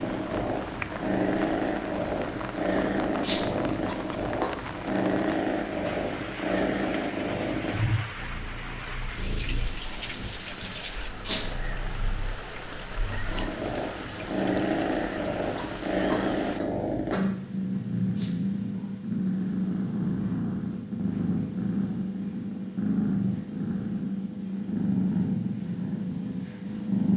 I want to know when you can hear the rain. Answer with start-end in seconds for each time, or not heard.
0.0-16.6.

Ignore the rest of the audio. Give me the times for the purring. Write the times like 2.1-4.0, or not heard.
0.0-27.1.